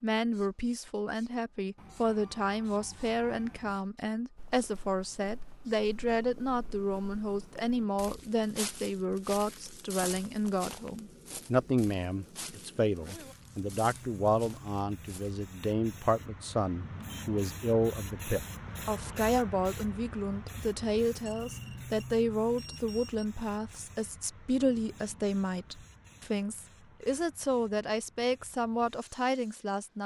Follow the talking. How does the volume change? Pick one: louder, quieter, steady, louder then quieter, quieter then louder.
steady.